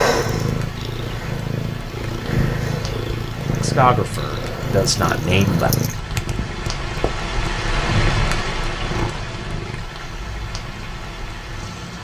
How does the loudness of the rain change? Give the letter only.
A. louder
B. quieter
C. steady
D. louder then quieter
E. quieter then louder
D.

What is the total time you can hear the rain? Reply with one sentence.
You can hear the rain for 12 seconds altogether.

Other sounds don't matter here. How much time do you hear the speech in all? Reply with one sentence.
The speech can be heard for 2 seconds in total.